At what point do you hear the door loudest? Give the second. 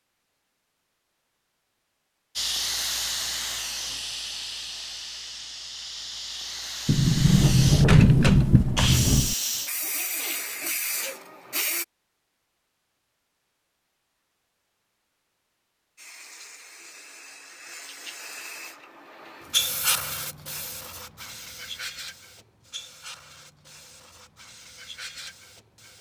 8 s.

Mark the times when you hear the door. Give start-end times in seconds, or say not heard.
6.8-9.3.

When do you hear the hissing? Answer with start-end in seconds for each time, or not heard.
2.4-11.8, 15.9-25.9.